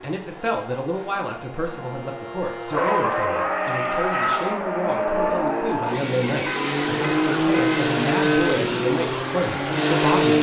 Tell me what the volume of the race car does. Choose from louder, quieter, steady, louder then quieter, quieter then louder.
louder.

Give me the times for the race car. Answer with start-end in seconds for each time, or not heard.
0.1-10.3.